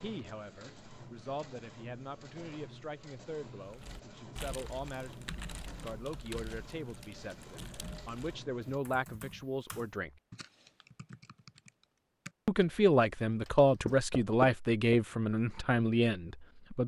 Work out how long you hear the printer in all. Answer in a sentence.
The printer can be heard for 9 seconds in total.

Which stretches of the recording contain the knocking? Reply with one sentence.
The knocking can be heard from 13.8 to 15.0 s.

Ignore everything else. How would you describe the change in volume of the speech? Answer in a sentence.
The loudness of the speech goes up.